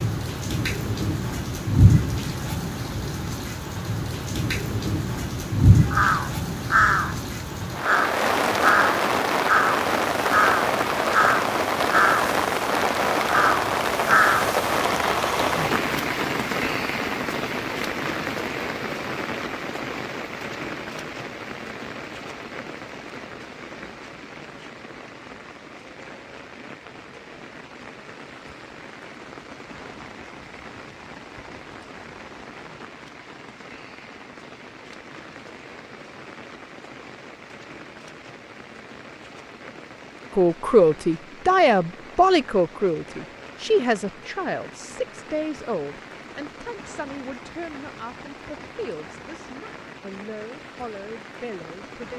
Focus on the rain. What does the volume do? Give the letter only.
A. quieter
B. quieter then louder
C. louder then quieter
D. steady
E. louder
A.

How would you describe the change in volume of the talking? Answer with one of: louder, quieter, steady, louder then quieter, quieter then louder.
quieter.